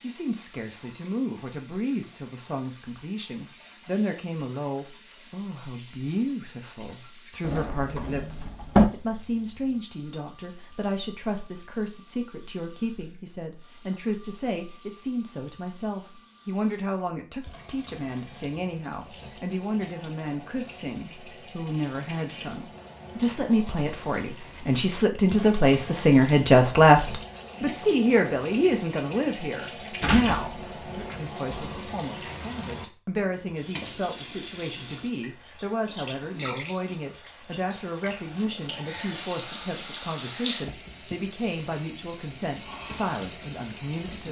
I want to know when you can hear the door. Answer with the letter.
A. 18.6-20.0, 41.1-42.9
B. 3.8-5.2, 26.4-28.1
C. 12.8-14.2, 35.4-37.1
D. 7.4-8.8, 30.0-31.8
D.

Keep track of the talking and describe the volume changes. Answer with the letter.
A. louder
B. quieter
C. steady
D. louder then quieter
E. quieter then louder
D.